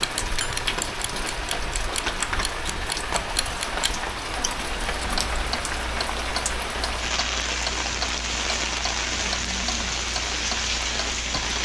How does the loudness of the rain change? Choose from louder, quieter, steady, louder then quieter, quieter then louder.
steady.